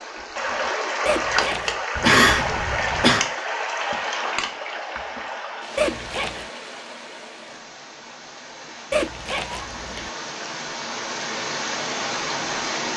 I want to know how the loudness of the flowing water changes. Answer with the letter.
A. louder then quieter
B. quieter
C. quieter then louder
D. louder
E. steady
C.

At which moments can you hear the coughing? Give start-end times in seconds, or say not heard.
1.9-3.2.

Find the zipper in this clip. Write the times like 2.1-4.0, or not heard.
1.1-1.8, 5.8-6.5, 8.9-10.1.